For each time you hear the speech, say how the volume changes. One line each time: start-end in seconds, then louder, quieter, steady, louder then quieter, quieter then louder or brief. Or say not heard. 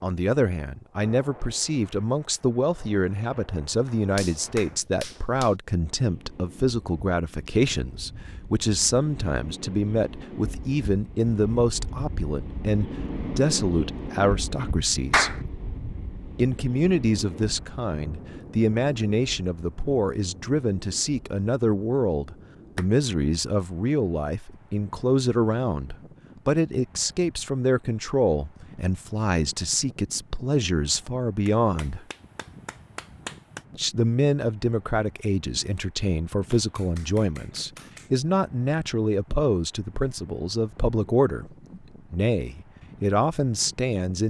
0.0-15.4 steady
16.4-32.0 steady
33.8-44.2 steady.